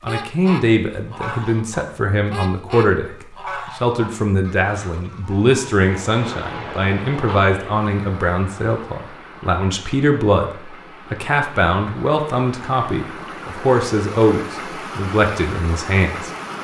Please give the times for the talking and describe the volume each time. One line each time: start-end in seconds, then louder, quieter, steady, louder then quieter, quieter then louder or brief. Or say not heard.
0.0-16.3 steady.